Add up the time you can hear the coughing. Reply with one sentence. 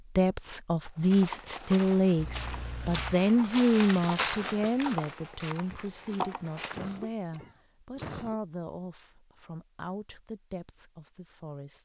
The coughing can be heard for 3 seconds in total.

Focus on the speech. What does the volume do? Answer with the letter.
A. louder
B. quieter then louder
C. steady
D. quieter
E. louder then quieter
D.